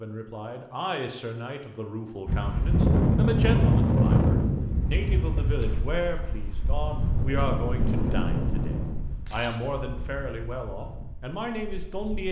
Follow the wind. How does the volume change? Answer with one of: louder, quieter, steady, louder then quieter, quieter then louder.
quieter.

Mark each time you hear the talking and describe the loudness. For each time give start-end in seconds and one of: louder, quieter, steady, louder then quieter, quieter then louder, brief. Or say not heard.
0.0-12.2 steady.